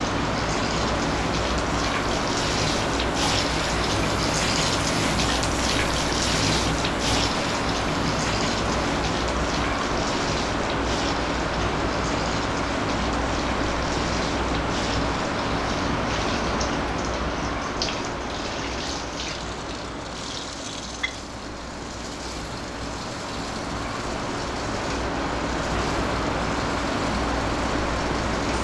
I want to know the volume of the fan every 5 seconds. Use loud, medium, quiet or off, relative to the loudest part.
loud, loud, loud, loud, medium, loud.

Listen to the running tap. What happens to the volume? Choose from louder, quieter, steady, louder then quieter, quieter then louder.
quieter.